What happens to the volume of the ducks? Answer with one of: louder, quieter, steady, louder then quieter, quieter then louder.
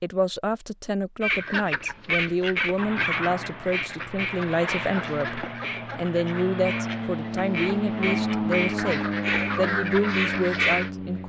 quieter then louder.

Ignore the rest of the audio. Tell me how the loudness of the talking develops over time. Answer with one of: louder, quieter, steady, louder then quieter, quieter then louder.
steady.